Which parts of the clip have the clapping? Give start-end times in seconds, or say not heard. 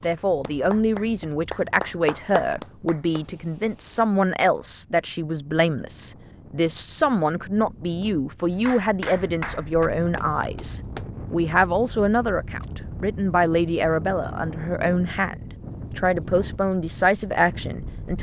0.0-3.2, 8.7-11.1.